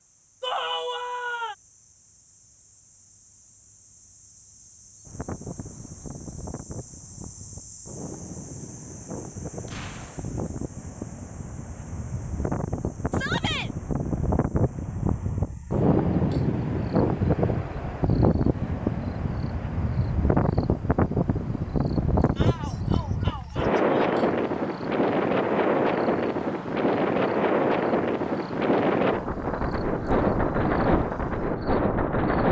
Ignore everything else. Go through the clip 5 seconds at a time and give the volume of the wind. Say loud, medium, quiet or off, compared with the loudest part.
off, quiet, medium, loud, loud, loud, loud.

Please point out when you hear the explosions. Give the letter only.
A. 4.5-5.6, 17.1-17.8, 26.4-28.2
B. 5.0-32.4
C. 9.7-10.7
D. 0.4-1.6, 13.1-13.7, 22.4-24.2
C.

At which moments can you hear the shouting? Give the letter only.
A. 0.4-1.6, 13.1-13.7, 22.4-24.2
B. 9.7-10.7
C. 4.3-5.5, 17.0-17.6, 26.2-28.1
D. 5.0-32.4
A.